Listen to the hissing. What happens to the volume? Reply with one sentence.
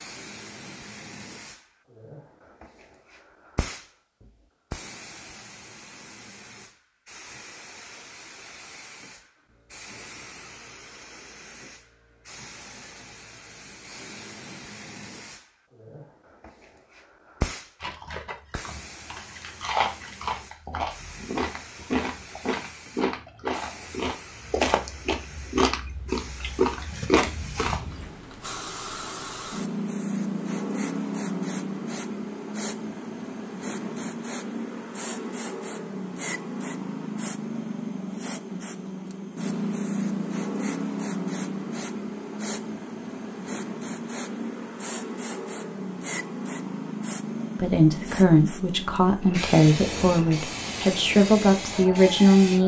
The volume of the hissing goes up.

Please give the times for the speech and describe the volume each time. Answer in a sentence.
The speech can be heard from 47.5 to 52.6 s, at a steady volume.